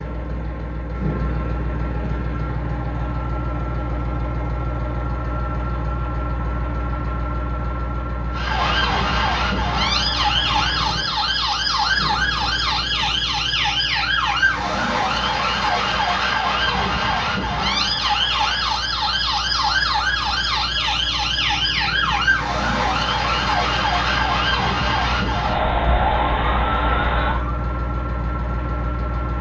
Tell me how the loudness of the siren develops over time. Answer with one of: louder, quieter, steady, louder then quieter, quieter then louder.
steady.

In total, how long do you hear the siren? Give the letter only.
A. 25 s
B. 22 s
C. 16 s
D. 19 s
D.